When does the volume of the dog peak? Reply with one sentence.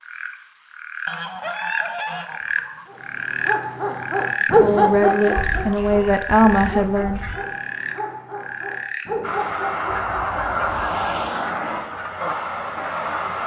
The loudest moment of the dog is at 5 seconds.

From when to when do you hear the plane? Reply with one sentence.
You can hear the plane from 9.2 to 13.4 s.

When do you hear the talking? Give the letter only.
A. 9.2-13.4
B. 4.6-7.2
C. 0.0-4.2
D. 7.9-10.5
B.